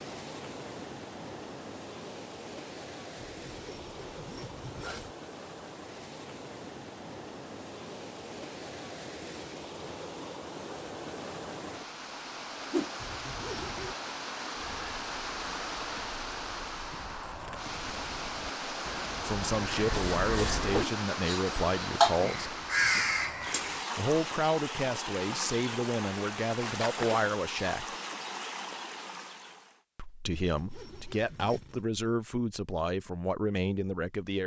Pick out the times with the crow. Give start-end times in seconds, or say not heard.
14.6-23.9.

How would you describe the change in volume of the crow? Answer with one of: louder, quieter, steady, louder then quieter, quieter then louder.
louder.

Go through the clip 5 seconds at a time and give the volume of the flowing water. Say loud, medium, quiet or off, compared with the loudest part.
medium, medium, loud, loud, loud, loud, off.